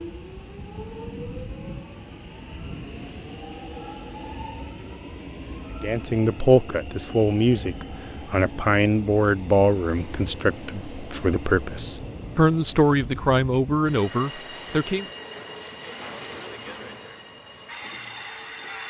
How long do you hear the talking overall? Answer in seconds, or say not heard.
9 s.